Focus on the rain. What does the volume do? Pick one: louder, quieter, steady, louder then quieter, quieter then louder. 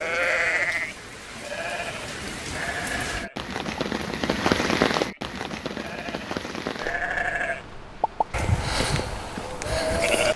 louder then quieter.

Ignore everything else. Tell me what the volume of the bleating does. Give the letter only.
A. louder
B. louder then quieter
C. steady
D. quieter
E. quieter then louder
E.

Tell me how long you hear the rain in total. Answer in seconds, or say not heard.
10 s.